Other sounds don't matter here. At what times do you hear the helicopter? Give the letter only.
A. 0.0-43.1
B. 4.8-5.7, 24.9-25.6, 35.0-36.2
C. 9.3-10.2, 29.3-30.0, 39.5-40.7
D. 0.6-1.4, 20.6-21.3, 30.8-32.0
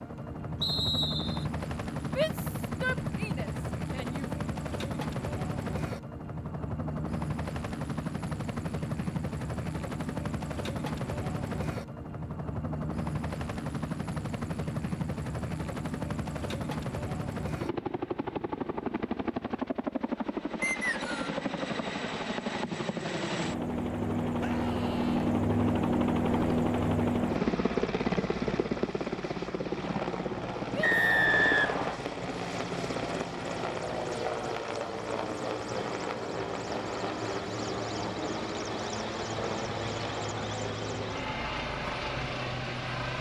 A.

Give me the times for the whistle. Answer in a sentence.
You can hear the whistle from 0.6 to 1.4 s, from 20.6 to 21.3 s and from 30.8 to 32.0 s.